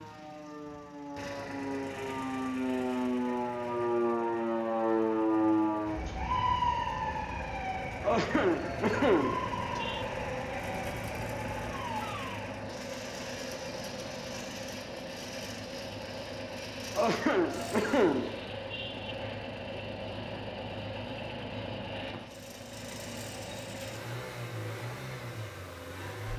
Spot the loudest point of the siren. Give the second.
5 s.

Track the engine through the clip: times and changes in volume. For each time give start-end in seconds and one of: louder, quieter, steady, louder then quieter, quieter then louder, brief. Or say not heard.
0.0-26.3 louder.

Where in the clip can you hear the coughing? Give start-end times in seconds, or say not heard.
8.0-10.1, 16.9-19.1.